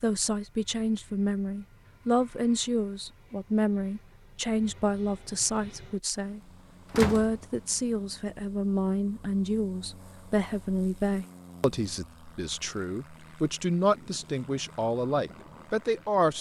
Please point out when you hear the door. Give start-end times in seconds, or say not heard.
6.9-7.4.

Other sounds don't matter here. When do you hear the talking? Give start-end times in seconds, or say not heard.
0.0-16.3.